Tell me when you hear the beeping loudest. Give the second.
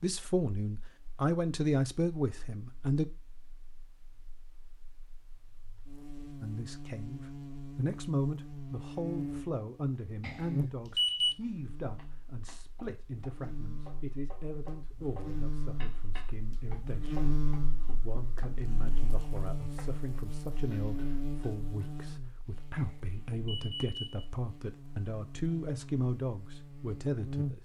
11 s.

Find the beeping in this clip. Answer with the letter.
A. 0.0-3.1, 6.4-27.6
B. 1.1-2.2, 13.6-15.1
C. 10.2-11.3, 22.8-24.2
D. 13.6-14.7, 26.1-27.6
C.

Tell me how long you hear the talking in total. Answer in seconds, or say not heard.
24 s.